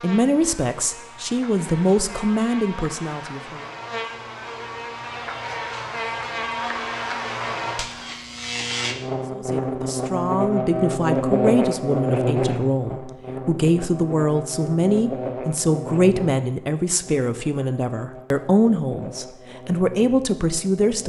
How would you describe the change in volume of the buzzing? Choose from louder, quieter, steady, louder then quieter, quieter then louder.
louder then quieter.